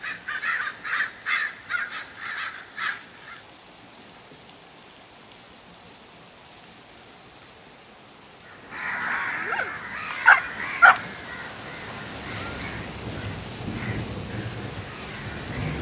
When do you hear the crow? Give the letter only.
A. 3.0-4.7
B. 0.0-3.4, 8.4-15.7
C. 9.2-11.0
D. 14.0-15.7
B.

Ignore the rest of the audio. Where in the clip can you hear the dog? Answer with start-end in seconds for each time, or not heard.
9.2-11.0.